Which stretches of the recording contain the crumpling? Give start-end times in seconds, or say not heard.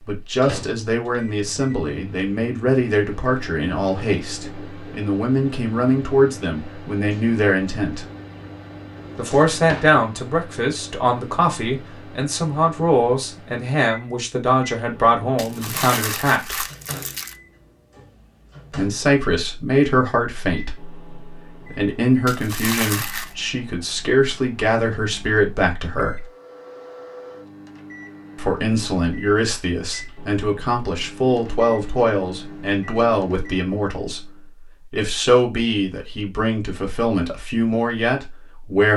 15.3-17.4, 22.2-23.4.